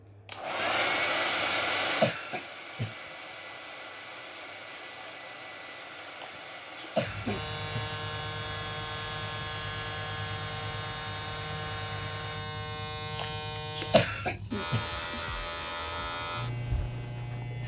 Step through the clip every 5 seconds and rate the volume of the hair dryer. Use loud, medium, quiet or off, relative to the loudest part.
loud, medium, medium, off.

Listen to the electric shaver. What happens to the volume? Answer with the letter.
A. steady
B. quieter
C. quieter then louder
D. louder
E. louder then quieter
A.